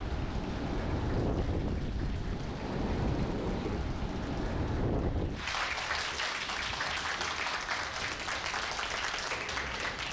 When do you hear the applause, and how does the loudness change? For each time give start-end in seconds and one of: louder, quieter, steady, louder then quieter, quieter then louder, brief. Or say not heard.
0.1-10.0 louder.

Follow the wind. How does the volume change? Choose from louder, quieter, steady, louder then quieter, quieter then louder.
quieter.